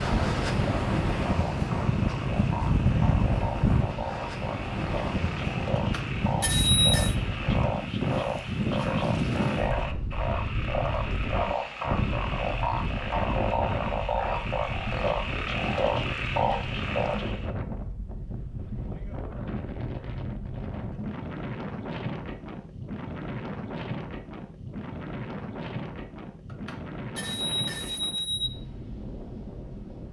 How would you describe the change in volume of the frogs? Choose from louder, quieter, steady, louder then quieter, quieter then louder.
louder.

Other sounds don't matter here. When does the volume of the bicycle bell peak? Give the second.
7 s.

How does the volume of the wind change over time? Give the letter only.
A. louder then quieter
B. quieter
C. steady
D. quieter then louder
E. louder
B.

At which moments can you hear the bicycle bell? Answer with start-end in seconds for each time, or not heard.
5.8-7.2, 26.4-28.5.